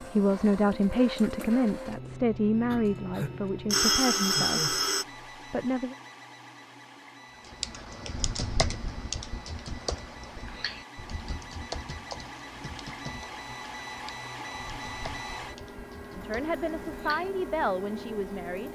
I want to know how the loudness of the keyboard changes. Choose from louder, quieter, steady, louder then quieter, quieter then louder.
quieter.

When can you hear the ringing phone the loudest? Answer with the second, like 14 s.
4 s.